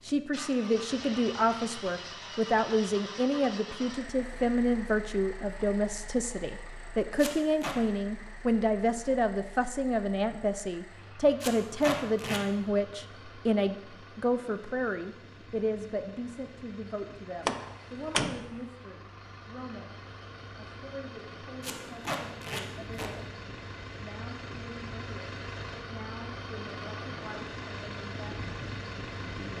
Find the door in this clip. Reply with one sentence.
The door can be heard from 17.4 to 18.6 s.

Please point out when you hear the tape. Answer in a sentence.
You can hear the tape from 7.2 to 7.8 s, from 11.4 to 12.4 s and from 21.6 to 23.1 s.